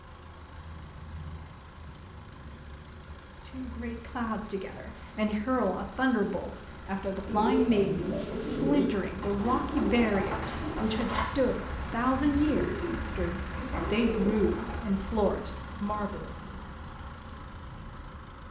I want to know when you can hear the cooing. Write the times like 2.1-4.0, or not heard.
7.2-14.8.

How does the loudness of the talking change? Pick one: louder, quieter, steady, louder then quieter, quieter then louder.
steady.